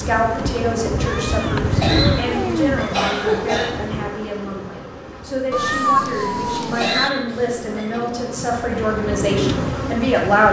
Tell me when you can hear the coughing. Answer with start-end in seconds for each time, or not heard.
1.8-3.7, 6.8-8.0.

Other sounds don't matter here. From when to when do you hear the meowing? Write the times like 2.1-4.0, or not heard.
1.1-2.8, 5.5-7.1.